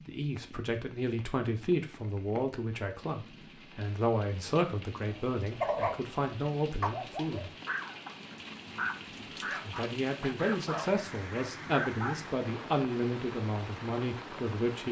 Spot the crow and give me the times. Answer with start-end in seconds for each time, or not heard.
not heard.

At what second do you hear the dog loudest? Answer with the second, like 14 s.
6 s.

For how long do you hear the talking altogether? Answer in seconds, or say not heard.
13 s.